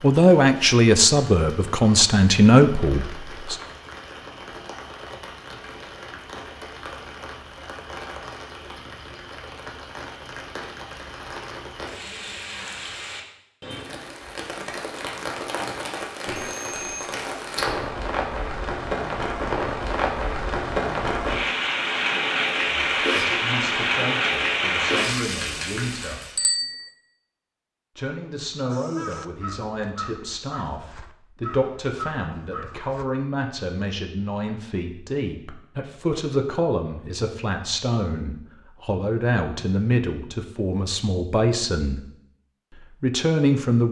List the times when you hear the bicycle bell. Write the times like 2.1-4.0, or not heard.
16.3-17.1, 26.4-26.9.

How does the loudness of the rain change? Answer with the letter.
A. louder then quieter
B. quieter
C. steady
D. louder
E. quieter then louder
D.